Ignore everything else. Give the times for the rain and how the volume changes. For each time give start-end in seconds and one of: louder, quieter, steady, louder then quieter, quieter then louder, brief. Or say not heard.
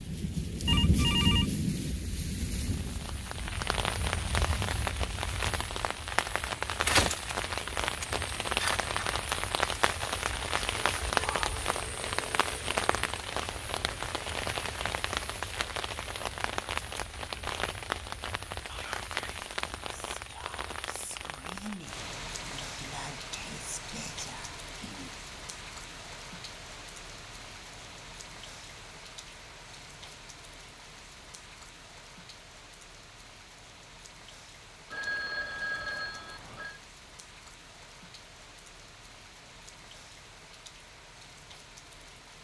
0.0-42.3 quieter.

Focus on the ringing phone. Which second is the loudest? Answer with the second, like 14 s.
1 s.